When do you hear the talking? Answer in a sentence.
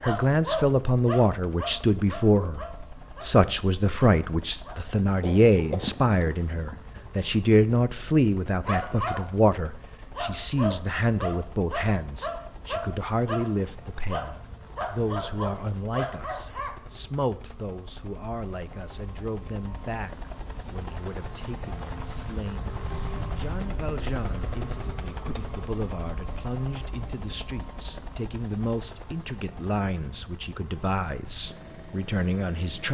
The talking can be heard from 0.0 to 32.9 s.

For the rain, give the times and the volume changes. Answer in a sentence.
The rain can't be heard in this clip.